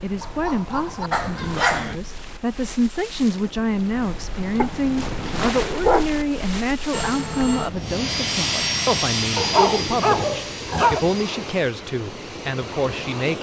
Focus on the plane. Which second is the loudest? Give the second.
9 s.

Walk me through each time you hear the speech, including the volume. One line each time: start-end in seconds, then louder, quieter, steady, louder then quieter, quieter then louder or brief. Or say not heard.
0.0-13.3 steady.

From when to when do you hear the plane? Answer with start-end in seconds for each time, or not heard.
6.9-13.3.